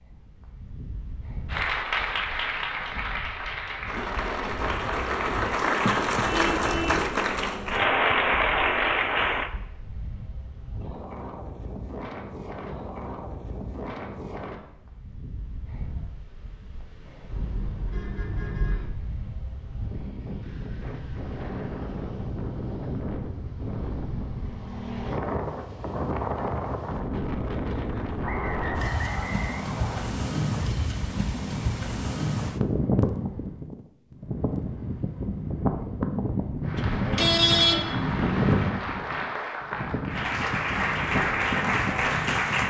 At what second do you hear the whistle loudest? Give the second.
29 s.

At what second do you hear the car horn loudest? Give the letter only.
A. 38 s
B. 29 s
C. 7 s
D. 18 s
A.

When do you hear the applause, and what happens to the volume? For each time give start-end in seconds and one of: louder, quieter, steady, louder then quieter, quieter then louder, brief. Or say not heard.
1.4-9.5 louder
36.6-42.6 louder.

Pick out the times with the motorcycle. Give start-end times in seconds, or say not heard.
not heard.